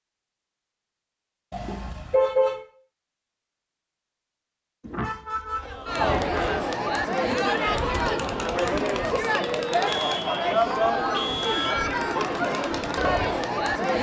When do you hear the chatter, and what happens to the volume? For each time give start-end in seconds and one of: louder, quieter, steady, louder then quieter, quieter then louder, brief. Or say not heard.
5.6-13.9 steady.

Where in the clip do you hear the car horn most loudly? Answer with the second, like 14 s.
2 s.